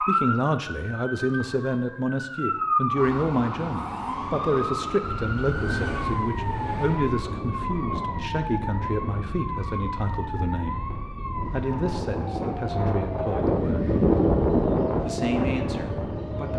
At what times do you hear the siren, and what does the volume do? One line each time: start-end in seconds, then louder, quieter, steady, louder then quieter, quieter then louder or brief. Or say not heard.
0.0-16.5 quieter.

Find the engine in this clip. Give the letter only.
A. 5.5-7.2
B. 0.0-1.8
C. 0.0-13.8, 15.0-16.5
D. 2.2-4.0
A.